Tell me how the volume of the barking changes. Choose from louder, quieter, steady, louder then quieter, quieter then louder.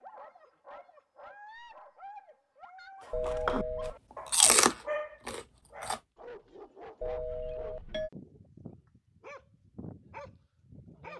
louder then quieter.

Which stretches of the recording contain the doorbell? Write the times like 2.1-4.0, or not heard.
3.1-4.0, 7.0-8.1.